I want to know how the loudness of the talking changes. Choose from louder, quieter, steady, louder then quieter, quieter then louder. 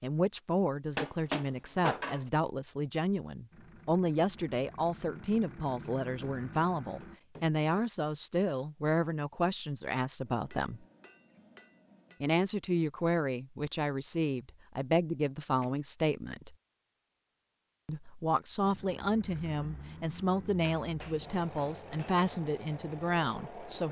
steady.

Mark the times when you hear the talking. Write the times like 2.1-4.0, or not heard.
0.0-10.8, 12.2-16.6, 17.9-23.8.